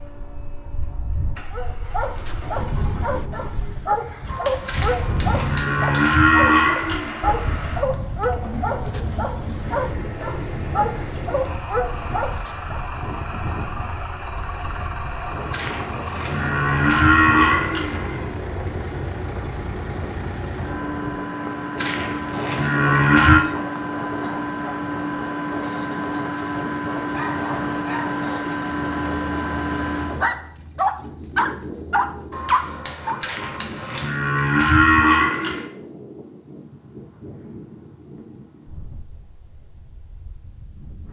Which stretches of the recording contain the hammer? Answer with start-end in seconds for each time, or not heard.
4.2-6.1, 32.3-34.1.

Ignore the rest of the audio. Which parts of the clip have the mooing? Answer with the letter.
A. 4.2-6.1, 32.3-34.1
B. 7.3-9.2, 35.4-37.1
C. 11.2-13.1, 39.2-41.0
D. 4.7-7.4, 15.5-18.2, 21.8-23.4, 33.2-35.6
D.